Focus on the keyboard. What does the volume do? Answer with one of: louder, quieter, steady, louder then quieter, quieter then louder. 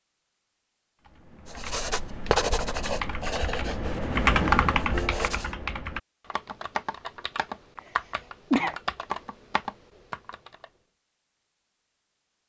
louder then quieter.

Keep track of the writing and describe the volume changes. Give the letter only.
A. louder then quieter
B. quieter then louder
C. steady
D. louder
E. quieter
E.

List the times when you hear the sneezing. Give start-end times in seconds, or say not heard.
7.8-8.8.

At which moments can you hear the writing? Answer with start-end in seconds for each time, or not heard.
1.4-5.5.